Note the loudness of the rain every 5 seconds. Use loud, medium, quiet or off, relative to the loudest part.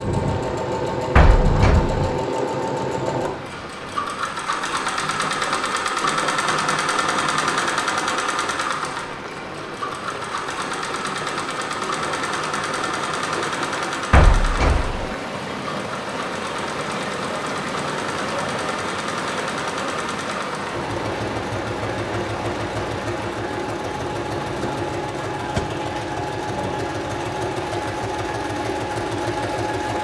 medium, medium, loud, loud, loud, medium.